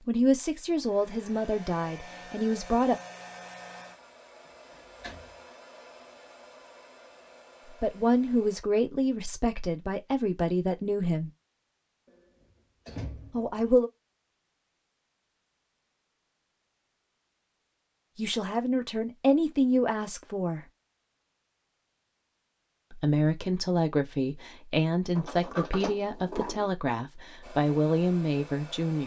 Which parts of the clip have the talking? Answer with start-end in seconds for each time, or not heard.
0.1-3.0, 7.8-11.3, 13.3-13.9, 18.1-20.6, 22.9-29.0.